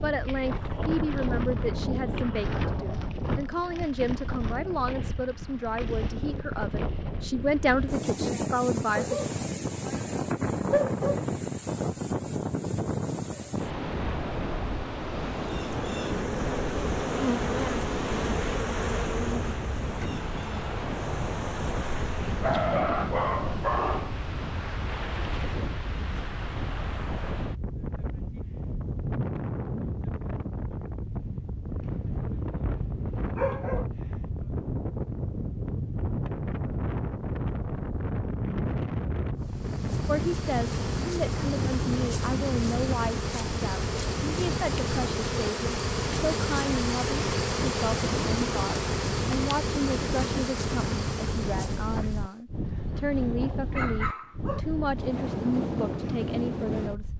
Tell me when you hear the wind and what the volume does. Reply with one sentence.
You can hear the wind from 0.0 to 57.1 s, at a steady volume.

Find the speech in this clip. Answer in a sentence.
The speech can be heard from 0.0 to 9.2 s and from 40.0 to 57.1 s.